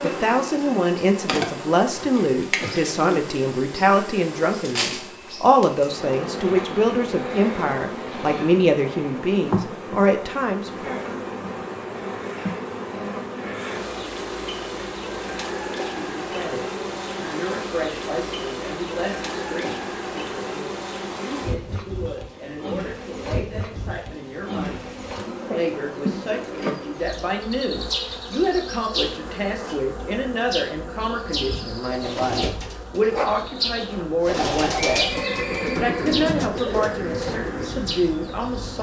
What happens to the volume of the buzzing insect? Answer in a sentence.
The loudness of the buzzing insect stays about the same.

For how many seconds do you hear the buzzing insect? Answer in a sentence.
The buzzing insect can be heard for 39 seconds in total.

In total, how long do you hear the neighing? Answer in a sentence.
You can hear the neighing for 2 seconds altogether.